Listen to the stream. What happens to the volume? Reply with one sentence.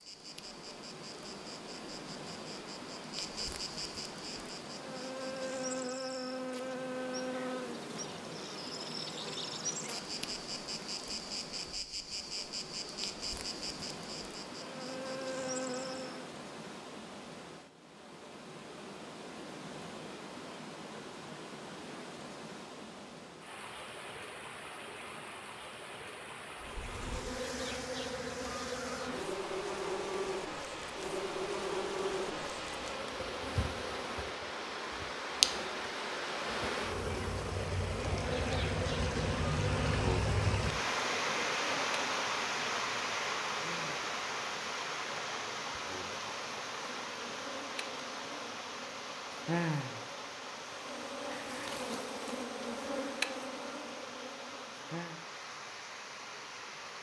The loudness of the stream goes up, then down.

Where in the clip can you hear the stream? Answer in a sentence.
You can hear the stream from 0.0 to 56.9 s.